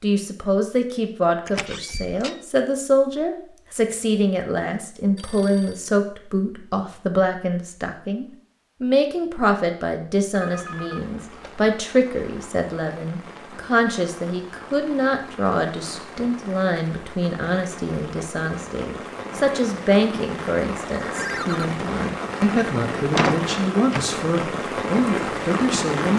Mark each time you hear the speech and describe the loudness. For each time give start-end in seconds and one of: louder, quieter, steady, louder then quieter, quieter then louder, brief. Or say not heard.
0.0-26.1 steady.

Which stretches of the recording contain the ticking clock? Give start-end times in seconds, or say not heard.
not heard.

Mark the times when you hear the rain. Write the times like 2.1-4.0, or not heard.
10.4-26.1.